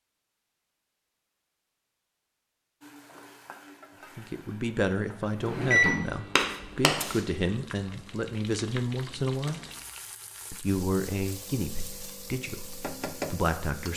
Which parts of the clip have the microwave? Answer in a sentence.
The microwave can be heard from 5.4 to 7.2 s.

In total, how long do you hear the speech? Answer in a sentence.
You can hear the speech for 9 seconds altogether.